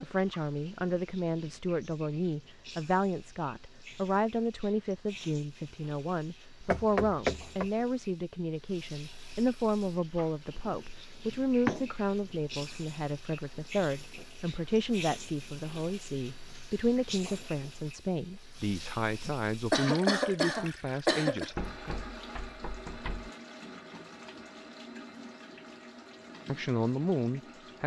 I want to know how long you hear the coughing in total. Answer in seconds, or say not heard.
2 s.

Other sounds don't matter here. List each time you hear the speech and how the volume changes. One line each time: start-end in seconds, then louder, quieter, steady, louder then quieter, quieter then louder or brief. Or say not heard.
0.0-21.9 steady
26.4-27.8 brief.